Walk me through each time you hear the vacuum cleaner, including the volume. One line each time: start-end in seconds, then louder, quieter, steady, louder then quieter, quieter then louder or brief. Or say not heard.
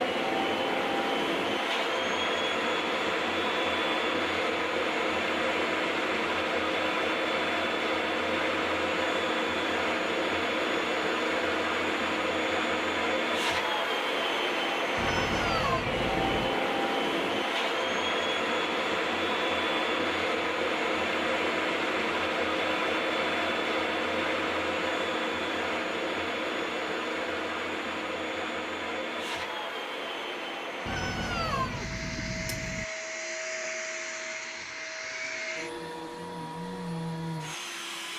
0.0-38.1 quieter.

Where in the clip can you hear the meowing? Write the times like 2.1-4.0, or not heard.
14.9-16.6, 30.9-32.9.